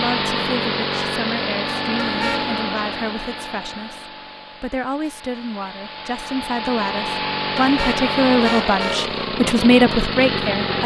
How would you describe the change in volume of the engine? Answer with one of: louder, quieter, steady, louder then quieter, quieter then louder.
quieter then louder.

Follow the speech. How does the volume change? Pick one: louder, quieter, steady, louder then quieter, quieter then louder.
louder.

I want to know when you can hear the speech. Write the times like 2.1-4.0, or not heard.
0.0-10.8.